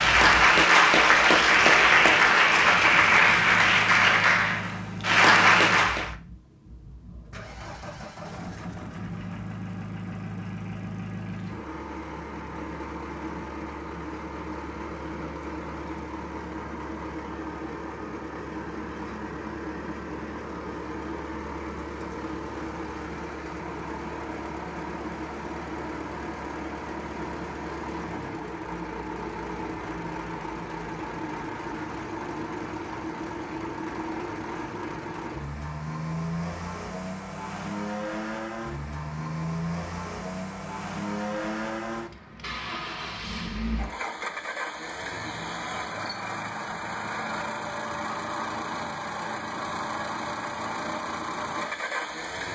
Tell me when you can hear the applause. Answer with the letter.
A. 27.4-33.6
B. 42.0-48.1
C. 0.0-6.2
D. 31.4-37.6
C.